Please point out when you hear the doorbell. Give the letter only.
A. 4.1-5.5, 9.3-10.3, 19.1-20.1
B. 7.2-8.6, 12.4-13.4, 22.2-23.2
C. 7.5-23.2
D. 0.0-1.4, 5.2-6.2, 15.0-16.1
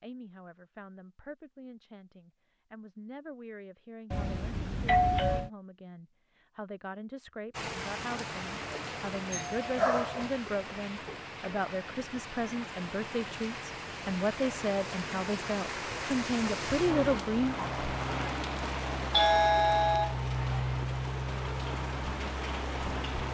A.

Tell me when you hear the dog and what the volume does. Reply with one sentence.
The dog can't be heard in this clip.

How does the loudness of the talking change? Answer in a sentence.
The loudness of the talking goes up.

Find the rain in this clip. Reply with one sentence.
You can hear the rain from 7.5 to 23.2 s.